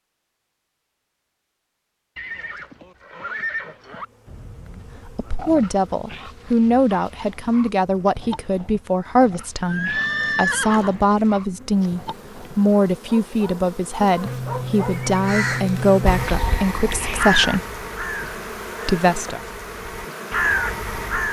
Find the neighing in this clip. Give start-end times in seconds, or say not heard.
2.1-4.0, 9.7-11.0, 14.2-16.2.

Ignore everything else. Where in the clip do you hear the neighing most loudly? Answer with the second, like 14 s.
10 s.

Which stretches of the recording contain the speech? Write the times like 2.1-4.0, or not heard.
5.0-17.6, 18.9-19.4.